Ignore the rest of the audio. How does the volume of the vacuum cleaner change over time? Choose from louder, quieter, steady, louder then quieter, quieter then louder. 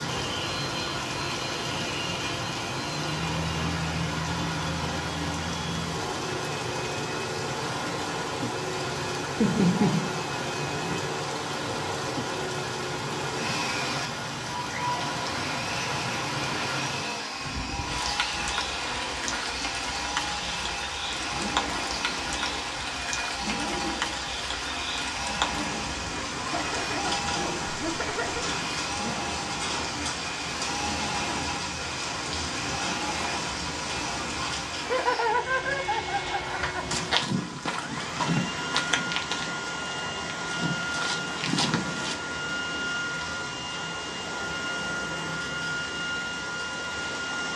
steady.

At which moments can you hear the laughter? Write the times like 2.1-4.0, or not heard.
9.4-10.9, 26.5-28.5, 34.9-37.0.